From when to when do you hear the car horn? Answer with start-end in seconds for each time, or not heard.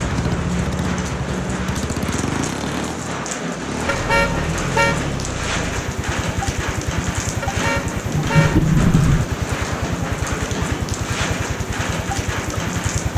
3.9-5.0, 7.4-8.7.